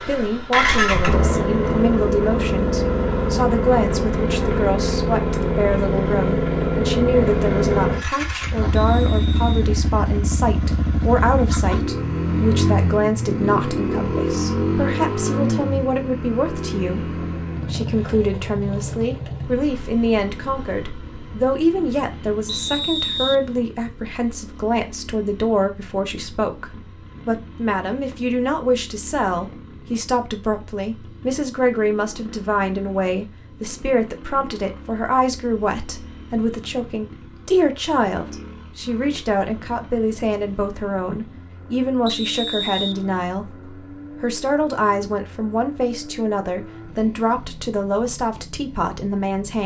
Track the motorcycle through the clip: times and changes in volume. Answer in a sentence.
The motorcycle can be heard from 0.0 to 49.6 s, getting quieter.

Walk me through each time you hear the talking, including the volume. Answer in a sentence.
The talking can be heard from 0.0 to 49.6 s, at a steady volume.